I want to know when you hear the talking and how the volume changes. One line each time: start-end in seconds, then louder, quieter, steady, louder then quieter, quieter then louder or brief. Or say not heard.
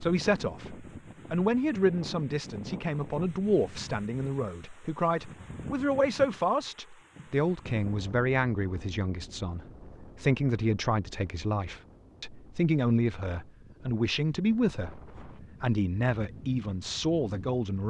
0.0-17.8 steady.